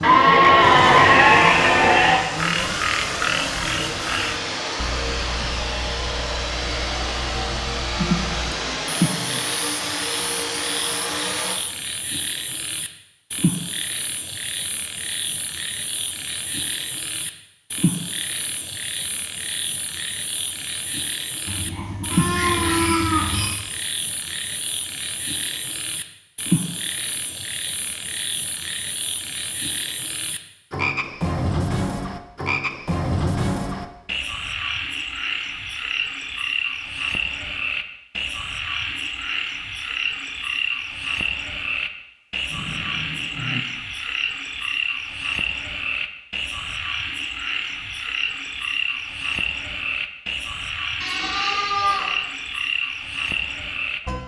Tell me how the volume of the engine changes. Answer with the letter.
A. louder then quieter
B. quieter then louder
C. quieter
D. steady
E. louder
D.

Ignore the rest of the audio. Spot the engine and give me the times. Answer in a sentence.
The engine can be heard from 0.0 to 11.6 s.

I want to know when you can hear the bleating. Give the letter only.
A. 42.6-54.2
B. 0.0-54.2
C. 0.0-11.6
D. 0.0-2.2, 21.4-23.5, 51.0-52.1
D.